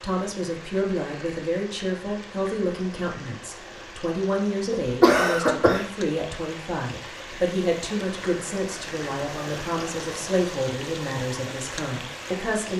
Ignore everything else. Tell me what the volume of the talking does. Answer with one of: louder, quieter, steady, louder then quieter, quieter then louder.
steady.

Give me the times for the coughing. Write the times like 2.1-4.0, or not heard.
4.7-5.8.